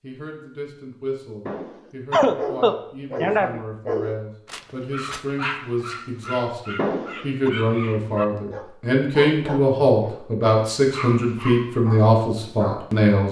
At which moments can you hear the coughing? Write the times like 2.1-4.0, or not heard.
1.4-3.6, 6.8-7.5.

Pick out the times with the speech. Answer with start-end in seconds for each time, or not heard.
0.0-13.2.